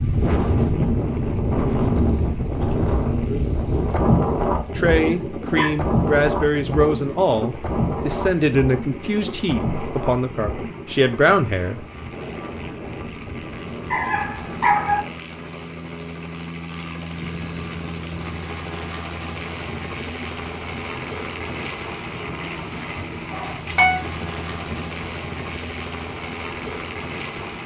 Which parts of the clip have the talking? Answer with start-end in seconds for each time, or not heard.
4.8-11.8.